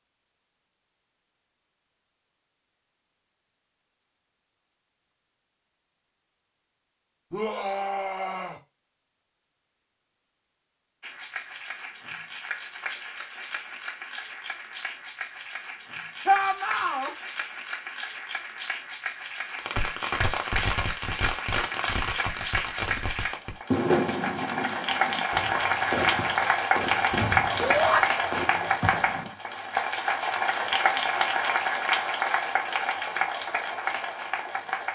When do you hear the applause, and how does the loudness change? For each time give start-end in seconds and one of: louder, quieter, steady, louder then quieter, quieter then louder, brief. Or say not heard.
11.0-34.8 louder.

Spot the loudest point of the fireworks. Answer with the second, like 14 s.
24 s.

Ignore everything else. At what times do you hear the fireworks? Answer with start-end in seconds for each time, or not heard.
19.6-29.3.